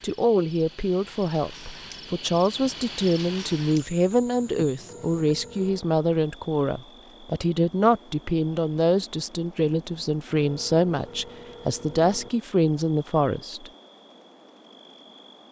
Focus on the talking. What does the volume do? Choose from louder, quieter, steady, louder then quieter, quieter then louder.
steady.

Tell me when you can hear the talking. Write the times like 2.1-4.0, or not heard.
0.0-13.7.